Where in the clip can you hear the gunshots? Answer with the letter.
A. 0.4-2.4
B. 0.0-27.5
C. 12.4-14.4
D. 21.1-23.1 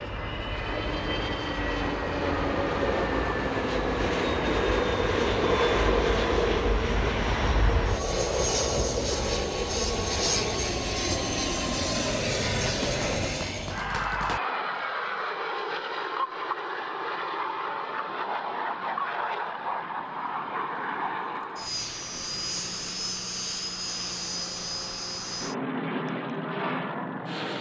C.